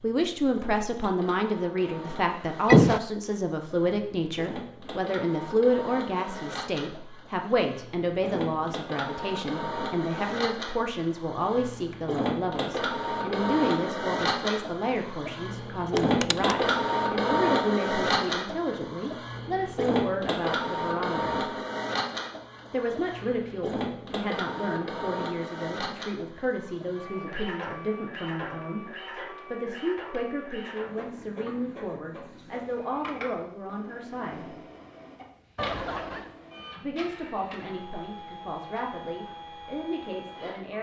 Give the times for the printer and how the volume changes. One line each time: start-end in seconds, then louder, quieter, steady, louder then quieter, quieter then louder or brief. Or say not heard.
0.0-40.7 louder then quieter.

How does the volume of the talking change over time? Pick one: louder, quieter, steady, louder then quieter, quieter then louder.
quieter.